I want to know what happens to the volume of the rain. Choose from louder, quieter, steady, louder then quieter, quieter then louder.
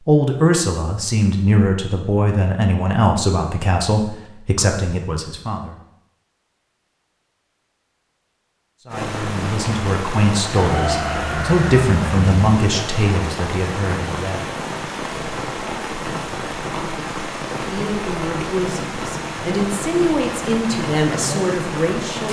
steady.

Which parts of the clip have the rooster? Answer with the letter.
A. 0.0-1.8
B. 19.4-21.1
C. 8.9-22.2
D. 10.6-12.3
D.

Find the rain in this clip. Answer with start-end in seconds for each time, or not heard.
8.9-22.2.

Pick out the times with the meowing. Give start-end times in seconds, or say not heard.
not heard.